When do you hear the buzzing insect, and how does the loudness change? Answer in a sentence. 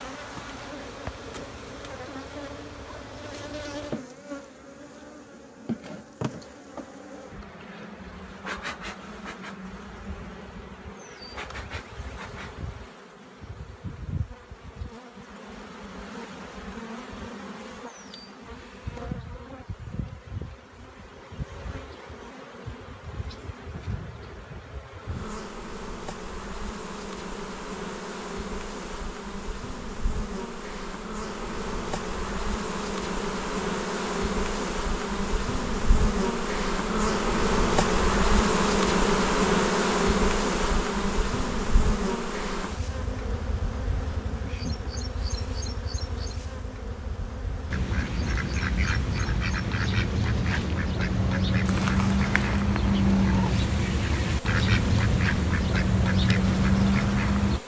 You can hear the buzzing insect from 0.0 to 57.6 s, getting louder then quieter.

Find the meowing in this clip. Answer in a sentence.
The meowing can be heard from 51.6 to 53.6 s.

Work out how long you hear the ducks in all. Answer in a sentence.
The ducks can be heard for 10 seconds in total.